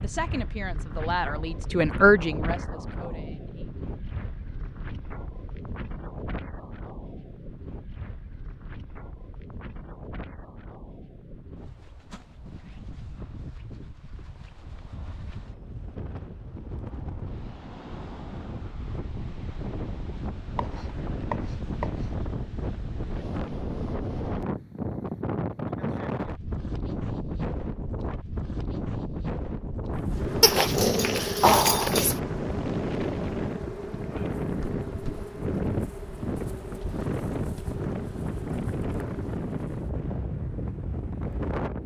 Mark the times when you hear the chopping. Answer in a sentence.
You can hear the chopping from 20.6 to 22.2 s.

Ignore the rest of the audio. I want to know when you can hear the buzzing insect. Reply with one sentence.
You can hear the buzzing insect from 30.1 to 39.4 s.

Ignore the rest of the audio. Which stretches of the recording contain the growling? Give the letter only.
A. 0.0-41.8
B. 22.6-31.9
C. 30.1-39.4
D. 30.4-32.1
D.